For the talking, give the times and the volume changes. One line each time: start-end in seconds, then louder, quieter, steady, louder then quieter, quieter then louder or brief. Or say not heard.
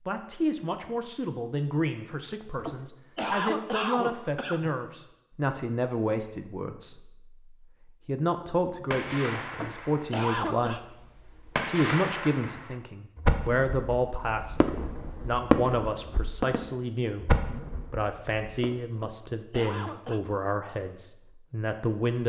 0.0-22.2 steady.